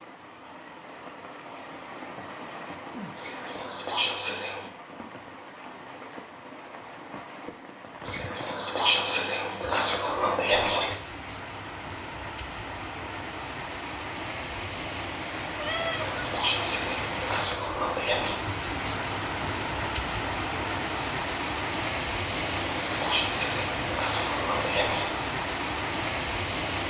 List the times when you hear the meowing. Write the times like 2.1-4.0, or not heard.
15.6-16.1.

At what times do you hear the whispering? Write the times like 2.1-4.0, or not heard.
3.1-4.7, 8.0-10.9, 15.6-18.4, 22.3-25.1.